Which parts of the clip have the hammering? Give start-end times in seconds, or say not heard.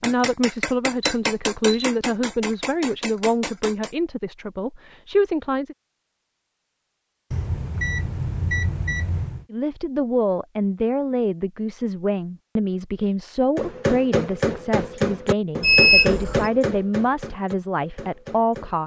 0.0-4.0, 13.6-18.8.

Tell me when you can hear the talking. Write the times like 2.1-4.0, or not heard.
0.0-5.8, 9.5-18.8.